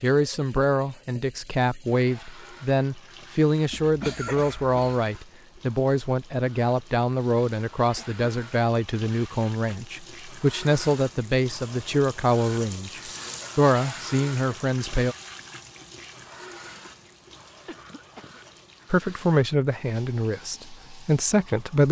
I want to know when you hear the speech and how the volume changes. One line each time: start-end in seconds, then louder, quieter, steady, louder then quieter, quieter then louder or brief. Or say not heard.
0.0-15.2 steady
18.9-21.8 brief.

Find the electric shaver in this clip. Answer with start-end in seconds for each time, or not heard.
not heard.